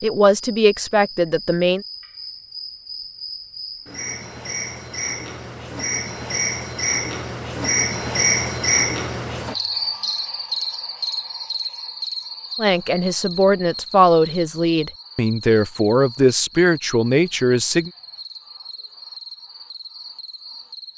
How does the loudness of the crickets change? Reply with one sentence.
The volume of the crickets goes up, then down.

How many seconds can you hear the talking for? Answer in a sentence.
You can hear the talking for 7 seconds altogether.